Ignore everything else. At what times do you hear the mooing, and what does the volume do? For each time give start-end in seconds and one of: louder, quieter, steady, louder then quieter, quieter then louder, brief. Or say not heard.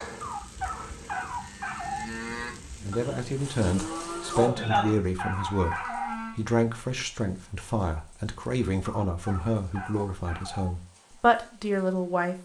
1.4-6.3 louder then quieter.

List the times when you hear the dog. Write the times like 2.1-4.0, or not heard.
0.2-2.1, 4.3-6.2, 8.8-10.8.